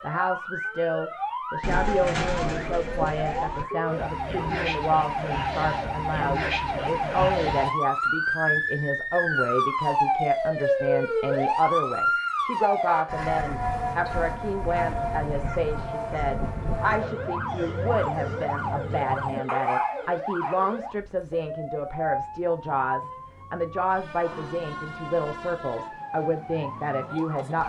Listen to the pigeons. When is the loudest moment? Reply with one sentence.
The volume of the pigeons peaks at 2 seconds.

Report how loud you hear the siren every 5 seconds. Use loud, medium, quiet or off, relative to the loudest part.
medium, loud, loud, medium, medium, medium.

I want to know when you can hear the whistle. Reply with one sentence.
The whistle can't be heard in this clip.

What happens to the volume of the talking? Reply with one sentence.
The loudness of the talking stays about the same.